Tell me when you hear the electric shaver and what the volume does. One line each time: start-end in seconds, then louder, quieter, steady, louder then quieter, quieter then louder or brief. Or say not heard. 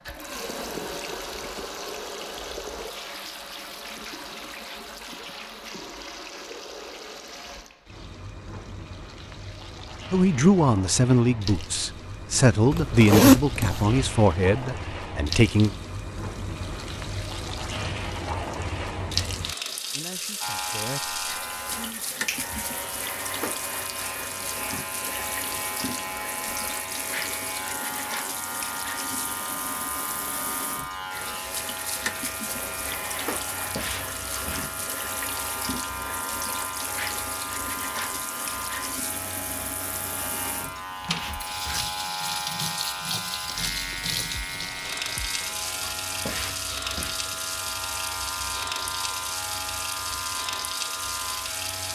20.4-51.9 steady.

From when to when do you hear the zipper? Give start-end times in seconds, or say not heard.
12.7-13.9.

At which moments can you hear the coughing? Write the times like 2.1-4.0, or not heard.
not heard.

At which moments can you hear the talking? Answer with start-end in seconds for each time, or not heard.
10.1-15.8, 19.9-22.1.